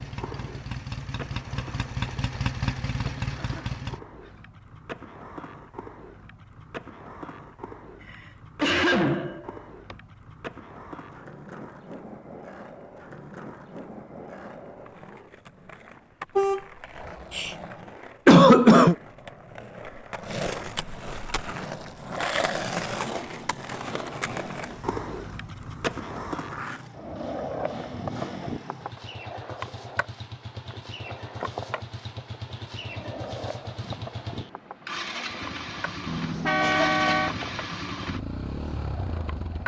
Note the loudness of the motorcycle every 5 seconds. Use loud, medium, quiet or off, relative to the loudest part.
loud, off, off, off, medium, medium, medium, loud.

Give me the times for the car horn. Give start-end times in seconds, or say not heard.
16.4-17.6, 36.0-37.5.